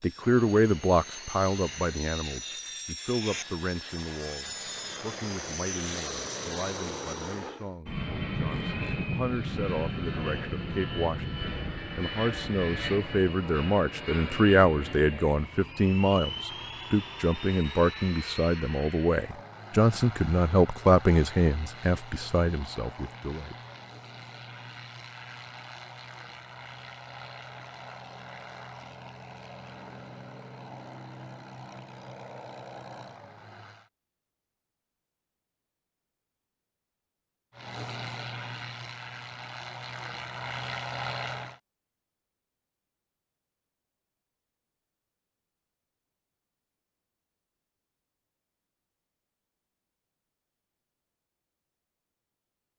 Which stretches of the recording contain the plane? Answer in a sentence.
You can hear the plane from 0.0 to 33.9 s and from 37.5 to 41.6 s.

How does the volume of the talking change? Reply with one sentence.
The loudness of the talking goes down, then up.